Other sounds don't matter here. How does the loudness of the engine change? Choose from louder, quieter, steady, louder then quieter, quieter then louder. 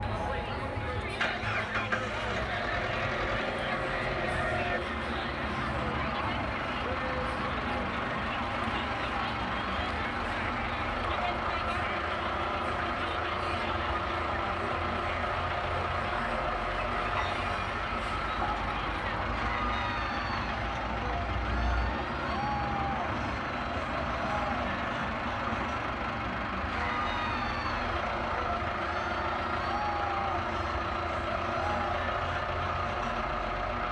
steady.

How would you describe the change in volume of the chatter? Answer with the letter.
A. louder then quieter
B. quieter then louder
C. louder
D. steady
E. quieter
D.